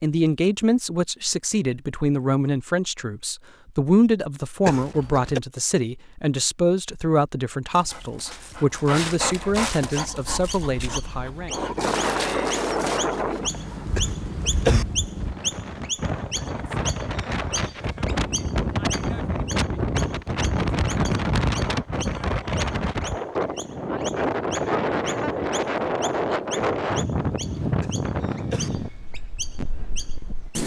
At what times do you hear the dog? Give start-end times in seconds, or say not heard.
7.7-14.0.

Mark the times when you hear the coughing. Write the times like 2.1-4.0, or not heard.
4.7-5.4, 13.9-14.8, 27.8-28.7.